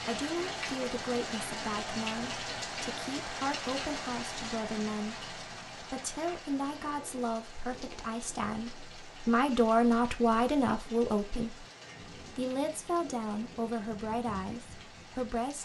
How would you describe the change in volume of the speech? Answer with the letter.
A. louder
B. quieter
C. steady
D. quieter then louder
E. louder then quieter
E.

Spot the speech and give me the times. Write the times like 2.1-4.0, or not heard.
0.1-15.6.